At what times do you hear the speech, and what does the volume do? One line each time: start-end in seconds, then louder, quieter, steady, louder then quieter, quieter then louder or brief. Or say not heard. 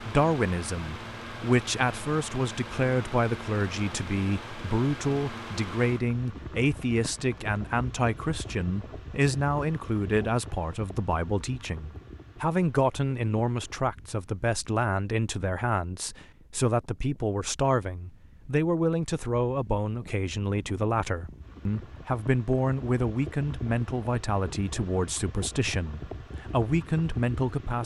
0.1-27.8 steady.